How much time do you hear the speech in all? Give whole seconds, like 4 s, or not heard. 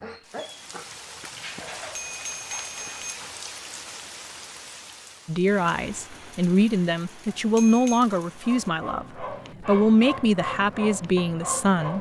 7 s.